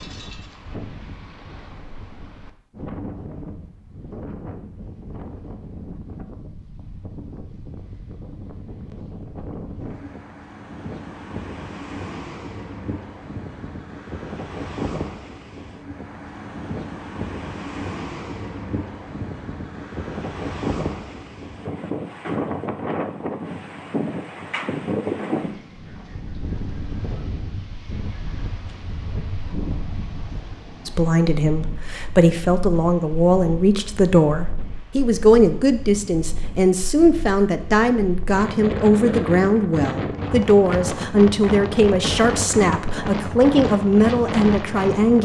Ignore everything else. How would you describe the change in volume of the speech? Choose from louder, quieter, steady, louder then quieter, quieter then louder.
steady.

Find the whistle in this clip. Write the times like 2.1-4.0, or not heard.
not heard.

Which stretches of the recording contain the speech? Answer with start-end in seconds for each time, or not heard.
30.9-45.2.